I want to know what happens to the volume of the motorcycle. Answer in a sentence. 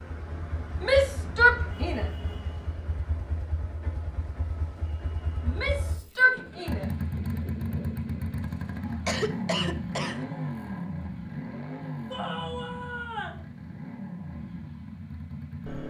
The volume of the motorcycle goes up, then down.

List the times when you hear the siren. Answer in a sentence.
The siren can't be heard in this clip.